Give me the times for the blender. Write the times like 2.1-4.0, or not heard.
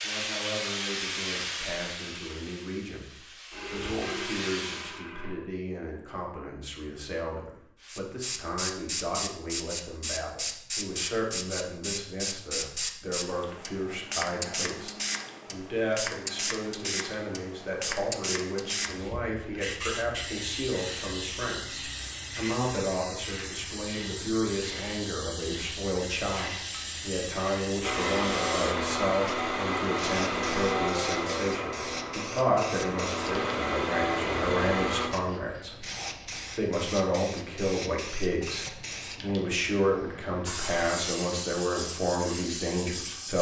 3.5-5.3, 27.8-35.1.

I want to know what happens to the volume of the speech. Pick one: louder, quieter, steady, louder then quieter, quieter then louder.
louder.